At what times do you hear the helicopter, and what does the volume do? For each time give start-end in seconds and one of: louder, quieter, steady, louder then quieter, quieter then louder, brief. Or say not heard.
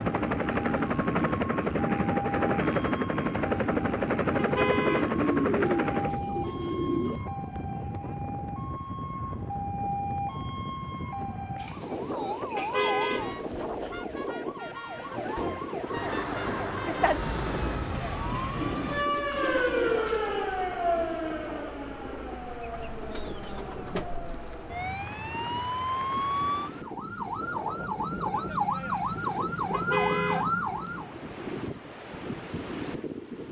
0.0-6.2 steady
15.8-18.0 brief.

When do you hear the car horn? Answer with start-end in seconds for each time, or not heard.
4.3-5.1, 12.6-13.3, 29.7-30.9.